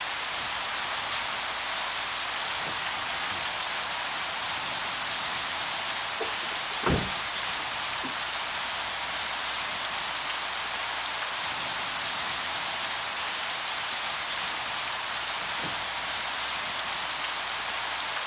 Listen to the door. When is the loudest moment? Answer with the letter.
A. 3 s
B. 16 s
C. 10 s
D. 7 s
D.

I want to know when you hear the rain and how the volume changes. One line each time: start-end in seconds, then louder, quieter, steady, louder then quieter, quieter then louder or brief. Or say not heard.
0.0-18.2 steady.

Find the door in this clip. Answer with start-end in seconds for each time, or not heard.
2.4-3.5, 6.2-8.2, 15.4-15.8.